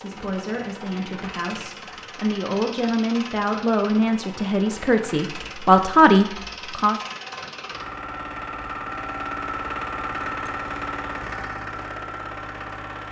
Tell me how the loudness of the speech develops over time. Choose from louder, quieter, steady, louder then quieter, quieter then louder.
louder.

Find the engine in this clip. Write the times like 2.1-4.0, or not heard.
0.0-13.0.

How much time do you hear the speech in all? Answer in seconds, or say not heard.
7 s.